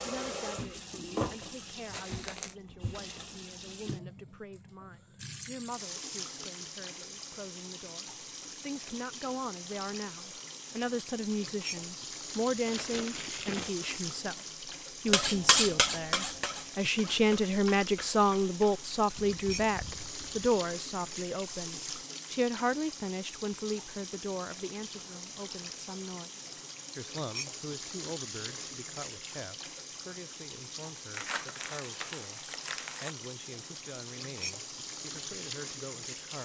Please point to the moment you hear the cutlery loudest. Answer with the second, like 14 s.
16 s.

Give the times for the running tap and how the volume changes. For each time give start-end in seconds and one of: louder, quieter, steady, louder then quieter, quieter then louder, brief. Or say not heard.
0.0-36.3 steady.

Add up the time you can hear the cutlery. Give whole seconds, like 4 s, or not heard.
5 s.